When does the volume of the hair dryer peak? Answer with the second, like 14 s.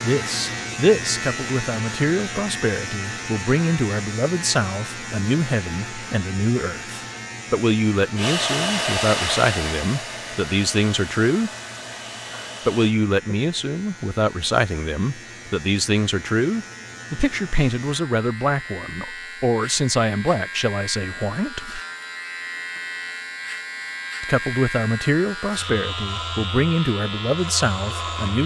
9 s.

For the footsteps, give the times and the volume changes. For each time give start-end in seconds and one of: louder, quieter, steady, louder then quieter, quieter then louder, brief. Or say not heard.
not heard.